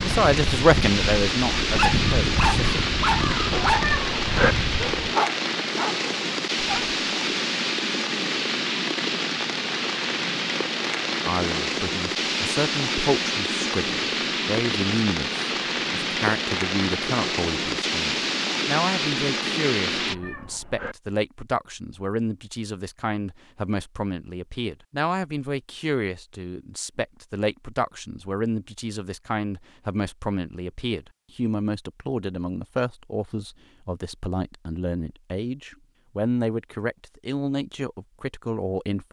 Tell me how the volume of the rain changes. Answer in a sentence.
The loudness of the rain stays about the same.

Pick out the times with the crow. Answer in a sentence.
You can hear the crow from 0.0 to 5.2 s.